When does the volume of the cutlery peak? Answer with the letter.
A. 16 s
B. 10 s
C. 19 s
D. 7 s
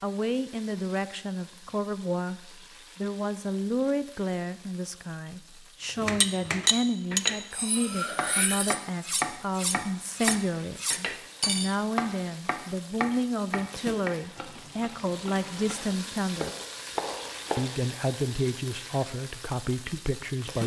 D.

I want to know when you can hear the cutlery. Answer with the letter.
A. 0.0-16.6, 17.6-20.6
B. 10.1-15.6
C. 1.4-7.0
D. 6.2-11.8
D.